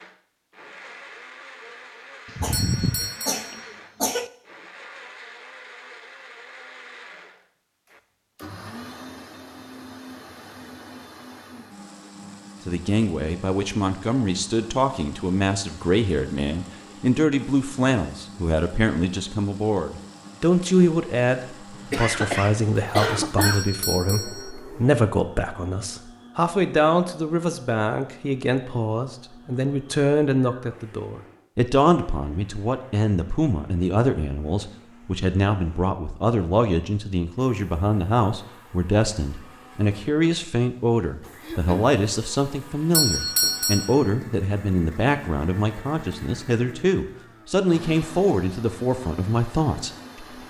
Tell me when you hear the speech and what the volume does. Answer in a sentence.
The speech can be heard from 12.7 to 50.4 s, at a steady volume.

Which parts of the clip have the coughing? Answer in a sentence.
You can hear the coughing from 2.2 to 4.3 s, from 21.8 to 23.7 s and from 41.4 to 42.0 s.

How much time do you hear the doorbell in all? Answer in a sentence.
You can hear the doorbell for 3 seconds altogether.